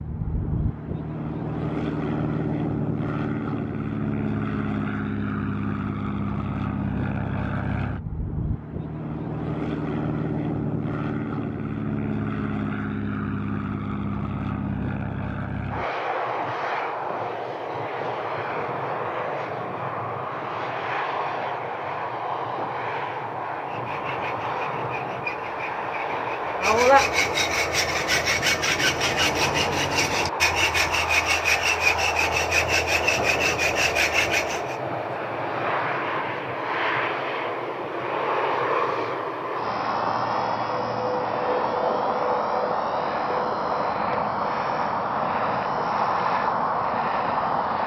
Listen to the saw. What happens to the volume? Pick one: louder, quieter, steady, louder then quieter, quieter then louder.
louder.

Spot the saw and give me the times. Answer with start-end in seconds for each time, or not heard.
23.5-34.8.